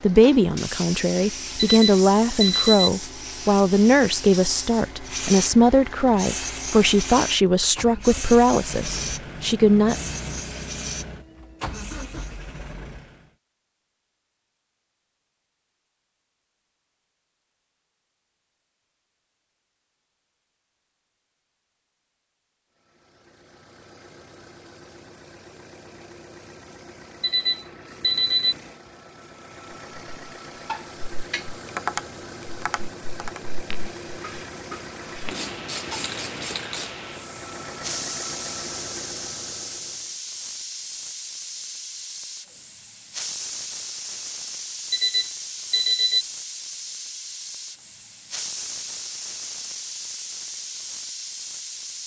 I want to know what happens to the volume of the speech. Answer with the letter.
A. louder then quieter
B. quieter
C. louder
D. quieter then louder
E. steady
E.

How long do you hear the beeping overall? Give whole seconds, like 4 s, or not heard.
4 s.